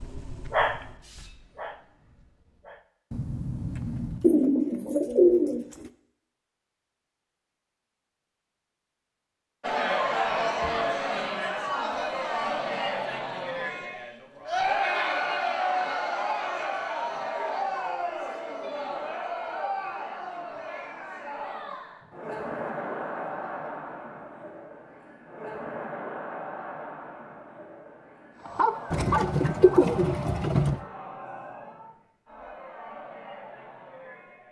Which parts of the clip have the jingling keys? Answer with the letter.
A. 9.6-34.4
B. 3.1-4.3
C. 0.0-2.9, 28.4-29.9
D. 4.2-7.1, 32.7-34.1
B.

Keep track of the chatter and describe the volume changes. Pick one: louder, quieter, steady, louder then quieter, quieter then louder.
quieter.